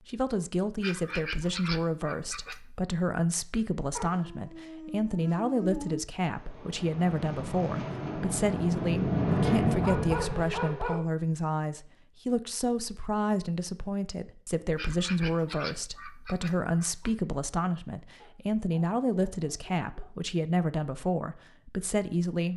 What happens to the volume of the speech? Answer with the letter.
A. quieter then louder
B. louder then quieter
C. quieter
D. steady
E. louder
D.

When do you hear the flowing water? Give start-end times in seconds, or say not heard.
not heard.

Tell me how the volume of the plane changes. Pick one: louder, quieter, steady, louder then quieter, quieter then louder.
louder then quieter.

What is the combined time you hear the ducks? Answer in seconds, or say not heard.
4 s.